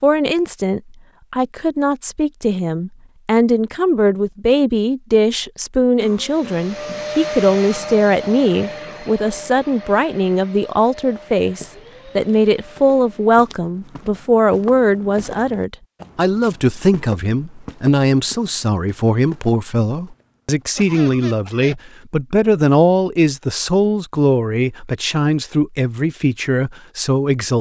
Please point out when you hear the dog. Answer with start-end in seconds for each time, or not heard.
not heard.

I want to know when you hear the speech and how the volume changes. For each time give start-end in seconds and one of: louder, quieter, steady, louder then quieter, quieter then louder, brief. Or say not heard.
0.0-27.5 steady.